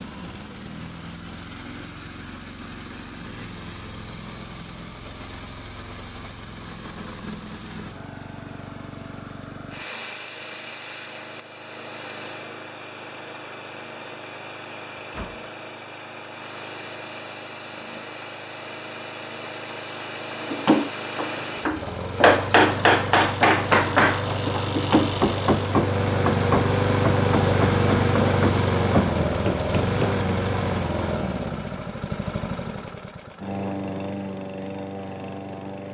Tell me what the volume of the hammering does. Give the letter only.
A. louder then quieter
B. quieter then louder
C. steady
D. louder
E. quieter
E.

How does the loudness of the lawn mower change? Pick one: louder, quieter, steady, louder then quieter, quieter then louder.
louder.